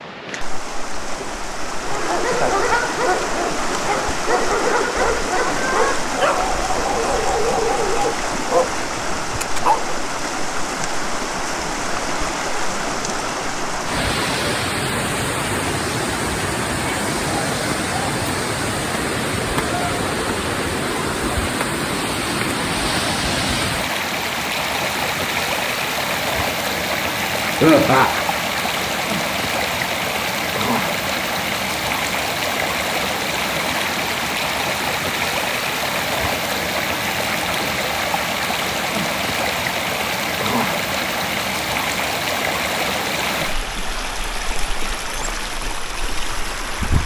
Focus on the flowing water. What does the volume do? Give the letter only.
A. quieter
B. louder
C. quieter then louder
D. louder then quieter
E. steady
E.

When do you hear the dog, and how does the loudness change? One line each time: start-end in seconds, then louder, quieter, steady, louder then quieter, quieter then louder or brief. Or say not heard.
1.8-9.9 steady.